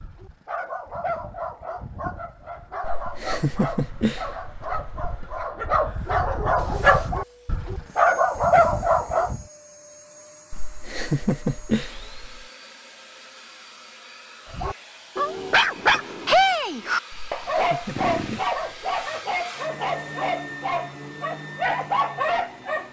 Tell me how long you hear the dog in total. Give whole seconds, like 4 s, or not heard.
18 s.